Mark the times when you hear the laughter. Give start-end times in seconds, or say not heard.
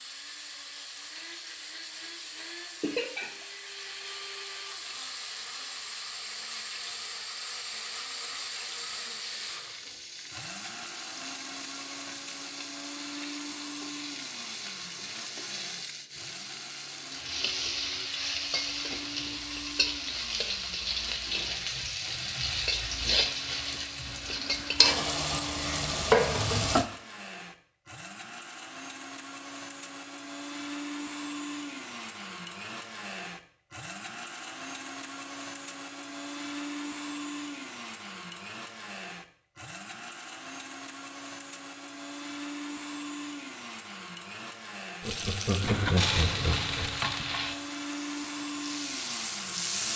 2.8-3.3, 45.0-47.0.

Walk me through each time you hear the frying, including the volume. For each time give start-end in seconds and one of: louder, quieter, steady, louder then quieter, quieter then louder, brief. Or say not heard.
0.0-26.9 louder
45.0-49.9 quieter then louder.